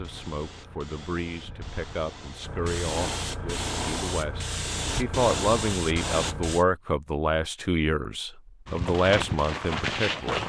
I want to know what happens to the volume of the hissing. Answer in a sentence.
The volume of the hissing goes up.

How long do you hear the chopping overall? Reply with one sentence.
The chopping can't be heard in this clip.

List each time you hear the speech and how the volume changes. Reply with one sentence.
You can hear the speech from 0.0 to 10.4 s, getting louder.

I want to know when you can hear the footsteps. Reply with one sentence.
The footsteps can be heard from 8.7 to 10.4 s.